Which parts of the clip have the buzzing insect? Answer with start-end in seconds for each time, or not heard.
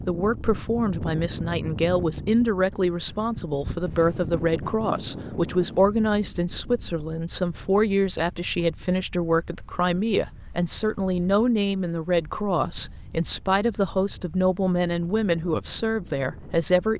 not heard.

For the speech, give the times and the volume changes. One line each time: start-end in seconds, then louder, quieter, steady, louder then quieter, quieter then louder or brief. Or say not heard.
0.1-16.9 steady.